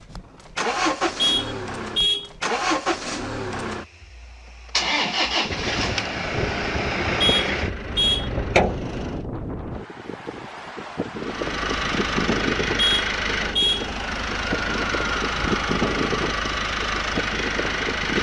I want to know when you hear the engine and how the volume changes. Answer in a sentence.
You can hear the engine from 0.0 to 9.2 s, at a steady volume; and from 11.2 to 18.1 s, at a steady volume.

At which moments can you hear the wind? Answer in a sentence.
The wind can be heard from 5.4 to 18.1 s.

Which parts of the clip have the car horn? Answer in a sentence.
You can hear the car horn from 1.1 to 2.3 s, from 7.2 to 8.3 s and from 12.8 to 13.9 s.